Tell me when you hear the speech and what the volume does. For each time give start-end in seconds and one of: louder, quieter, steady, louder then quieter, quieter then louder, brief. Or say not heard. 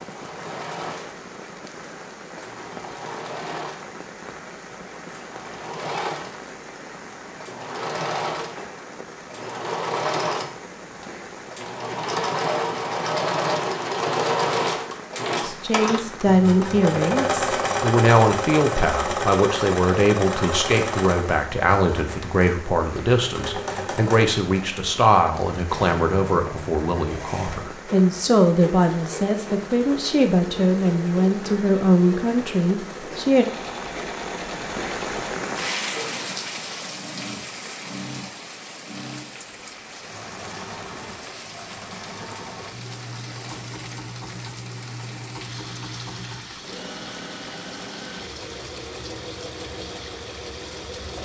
15.4-33.5 steady.